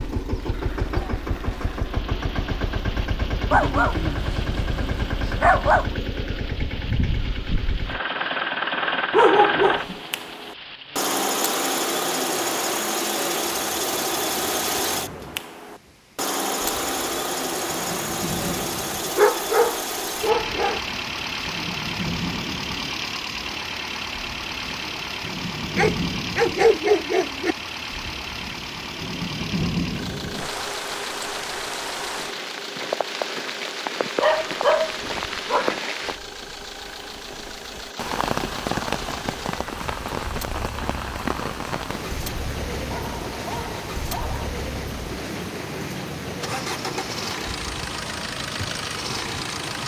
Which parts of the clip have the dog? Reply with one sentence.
The dog can be heard from 3.5 to 5.8 s, from 9.1 to 9.9 s, from 19.1 to 20.8 s, from 25.8 to 27.6 s, from 34.2 to 35.8 s and from 42.9 to 44.5 s.